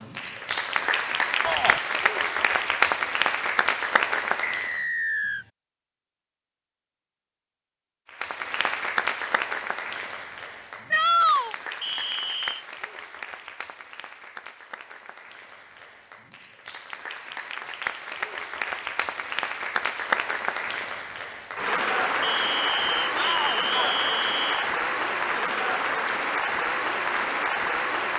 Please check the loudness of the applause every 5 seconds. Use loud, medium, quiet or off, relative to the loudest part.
loud, loud, quiet, medium, loud, loud.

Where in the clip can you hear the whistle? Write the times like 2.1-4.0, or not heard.
4.4-5.5, 11.8-12.7, 22.2-24.6.